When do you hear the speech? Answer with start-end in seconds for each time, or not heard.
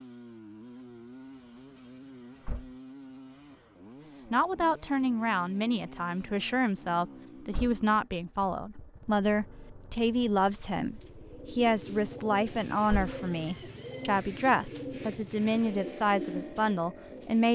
4.3-17.4.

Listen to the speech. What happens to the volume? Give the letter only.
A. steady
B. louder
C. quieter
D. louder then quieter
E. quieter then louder
A.